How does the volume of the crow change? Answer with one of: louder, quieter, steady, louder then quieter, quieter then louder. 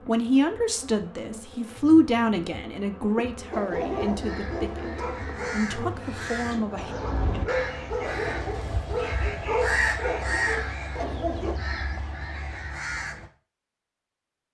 louder then quieter.